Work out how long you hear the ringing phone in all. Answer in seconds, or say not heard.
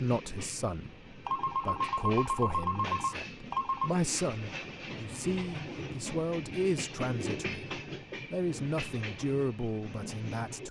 3 s.